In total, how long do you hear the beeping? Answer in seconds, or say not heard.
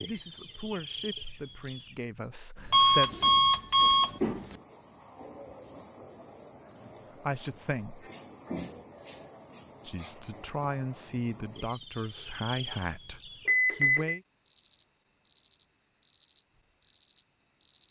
2 s.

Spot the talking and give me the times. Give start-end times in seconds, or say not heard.
0.0-3.1, 7.2-8.1, 9.8-14.2.